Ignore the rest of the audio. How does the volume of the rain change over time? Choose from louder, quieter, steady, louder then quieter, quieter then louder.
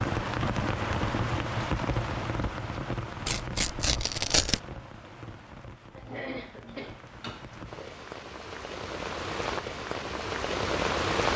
quieter then louder.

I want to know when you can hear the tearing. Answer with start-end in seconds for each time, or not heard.
3.2-4.6.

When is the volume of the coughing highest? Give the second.
6 s.